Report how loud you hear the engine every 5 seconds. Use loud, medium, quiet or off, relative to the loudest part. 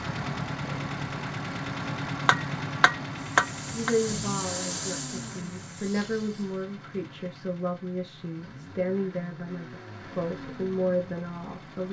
loud, medium, medium.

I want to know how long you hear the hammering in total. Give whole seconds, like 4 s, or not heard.
2 s.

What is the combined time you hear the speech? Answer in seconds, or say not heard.
8 s.